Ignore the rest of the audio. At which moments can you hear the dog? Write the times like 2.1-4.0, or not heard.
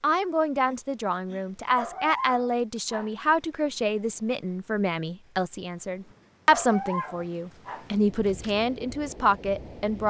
1.8-3.1, 6.5-8.6.